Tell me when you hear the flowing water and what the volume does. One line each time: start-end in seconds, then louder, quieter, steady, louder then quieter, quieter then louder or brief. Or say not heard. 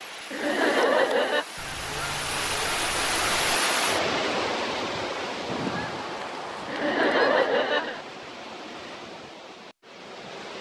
0.0-10.5 louder then quieter.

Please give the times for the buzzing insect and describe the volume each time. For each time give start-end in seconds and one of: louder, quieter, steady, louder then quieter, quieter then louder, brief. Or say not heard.
not heard.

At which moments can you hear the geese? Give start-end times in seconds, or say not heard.
1.6-3.6, 5.5-7.5.